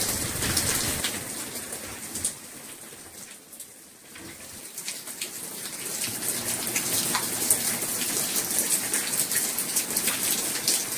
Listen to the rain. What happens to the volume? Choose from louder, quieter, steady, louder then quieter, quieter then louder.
quieter then louder.